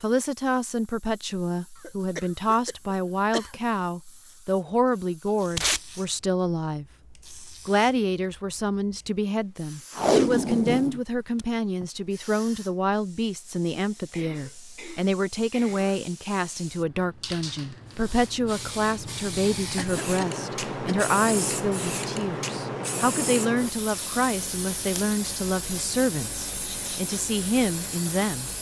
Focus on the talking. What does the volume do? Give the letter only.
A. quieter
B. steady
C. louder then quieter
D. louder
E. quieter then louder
B.